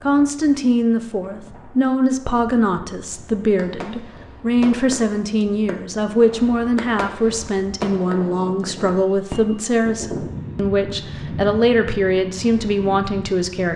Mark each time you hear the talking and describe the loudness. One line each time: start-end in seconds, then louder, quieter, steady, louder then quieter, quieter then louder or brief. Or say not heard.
0.0-13.7 steady.